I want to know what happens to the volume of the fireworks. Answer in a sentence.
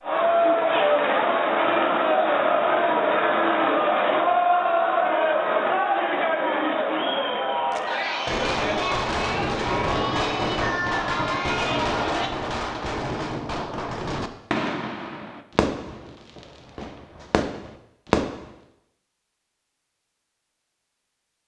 The volume of the fireworks goes down.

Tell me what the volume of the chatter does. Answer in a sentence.
The loudness of the chatter goes down.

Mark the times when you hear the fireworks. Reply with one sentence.
The fireworks can be heard from 7.7 to 18.5 s.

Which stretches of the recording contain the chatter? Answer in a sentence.
The chatter can be heard from 0.0 to 12.3 s.